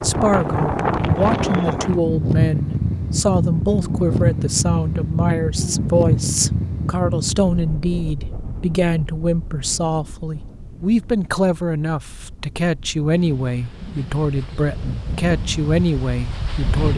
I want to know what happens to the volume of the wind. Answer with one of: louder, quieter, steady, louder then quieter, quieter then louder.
quieter then louder.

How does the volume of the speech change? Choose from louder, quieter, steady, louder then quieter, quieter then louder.
steady.